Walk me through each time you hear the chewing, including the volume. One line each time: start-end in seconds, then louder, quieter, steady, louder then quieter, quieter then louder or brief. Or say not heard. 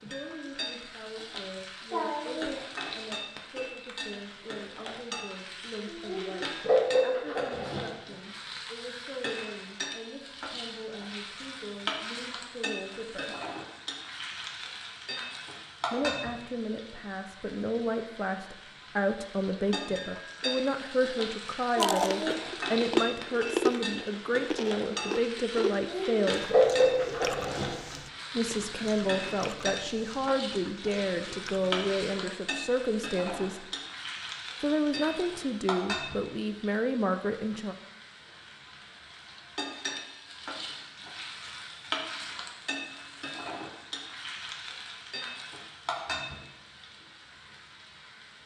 21.8-32.0 quieter.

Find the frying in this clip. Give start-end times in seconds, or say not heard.
0.0-48.4.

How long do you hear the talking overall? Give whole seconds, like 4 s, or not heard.
32 s.